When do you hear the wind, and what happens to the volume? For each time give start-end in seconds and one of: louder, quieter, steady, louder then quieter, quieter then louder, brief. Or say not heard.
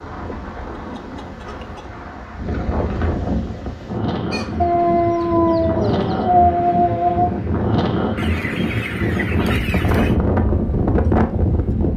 0.0-11.9 louder.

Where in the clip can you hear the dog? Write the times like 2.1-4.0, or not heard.
4.6-7.3.